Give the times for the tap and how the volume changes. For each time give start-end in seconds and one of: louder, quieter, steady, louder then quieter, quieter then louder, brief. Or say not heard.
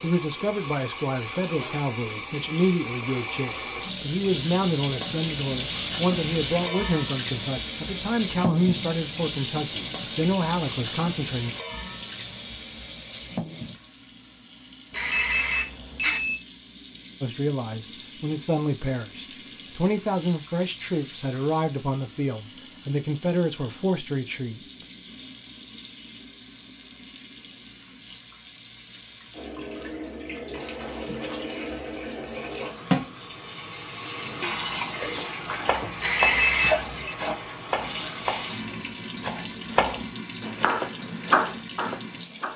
0.0-42.5 quieter then louder.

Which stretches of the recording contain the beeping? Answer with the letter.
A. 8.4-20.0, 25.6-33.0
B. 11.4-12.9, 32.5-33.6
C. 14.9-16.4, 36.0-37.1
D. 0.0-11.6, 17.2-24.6
C.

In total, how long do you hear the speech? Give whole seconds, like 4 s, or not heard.
19 s.